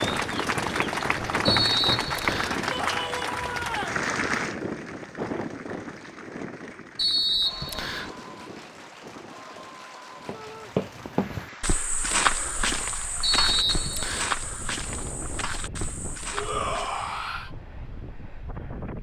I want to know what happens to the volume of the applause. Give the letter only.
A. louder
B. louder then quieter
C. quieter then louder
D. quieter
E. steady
D.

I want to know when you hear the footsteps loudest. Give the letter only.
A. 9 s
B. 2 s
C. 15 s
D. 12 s
D.